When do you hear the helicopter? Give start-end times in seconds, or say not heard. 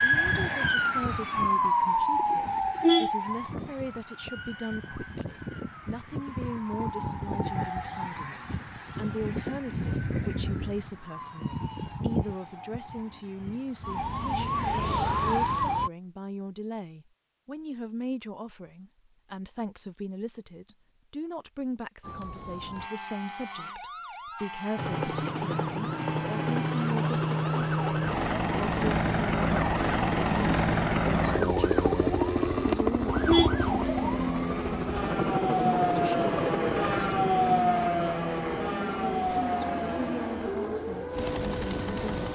24.8-42.3.